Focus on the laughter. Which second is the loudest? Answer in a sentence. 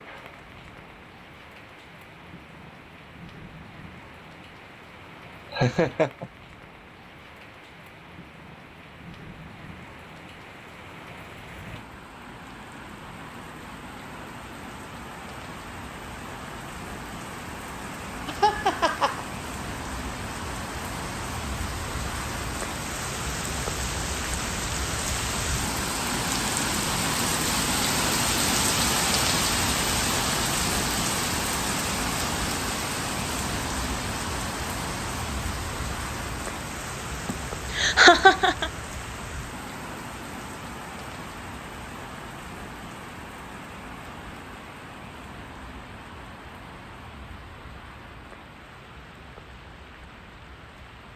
The loudest moment of the laughter is at 38 seconds.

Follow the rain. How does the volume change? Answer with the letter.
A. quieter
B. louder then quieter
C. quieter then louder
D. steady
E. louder
B.